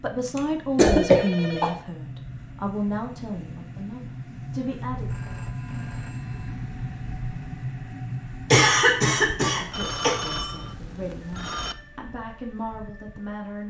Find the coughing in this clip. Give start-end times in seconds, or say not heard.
0.3-1.7, 8.5-10.2.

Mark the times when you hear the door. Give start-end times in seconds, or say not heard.
not heard.